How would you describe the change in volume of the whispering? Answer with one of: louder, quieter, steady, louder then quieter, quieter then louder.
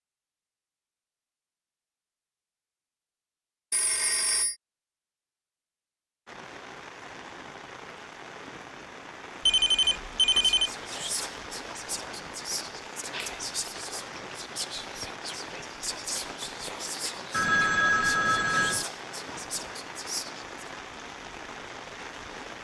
steady.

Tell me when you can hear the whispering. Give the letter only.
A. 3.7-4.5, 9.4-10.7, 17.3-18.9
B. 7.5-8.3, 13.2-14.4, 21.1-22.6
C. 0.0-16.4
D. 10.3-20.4
D.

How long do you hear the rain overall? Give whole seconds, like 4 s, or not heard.
16 s.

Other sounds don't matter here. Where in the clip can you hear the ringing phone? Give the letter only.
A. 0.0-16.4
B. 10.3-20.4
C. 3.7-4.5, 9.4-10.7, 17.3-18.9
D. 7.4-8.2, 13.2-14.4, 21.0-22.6
C.